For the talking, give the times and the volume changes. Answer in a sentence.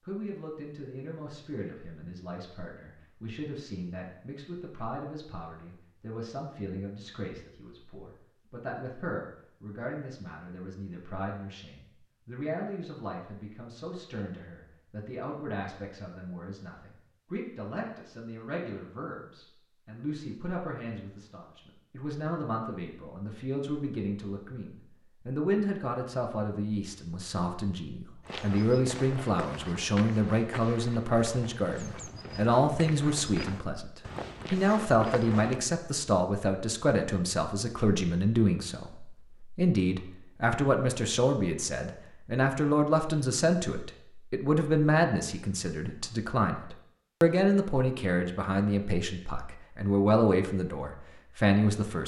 The talking can be heard from 0.0 to 52.0 s, getting louder.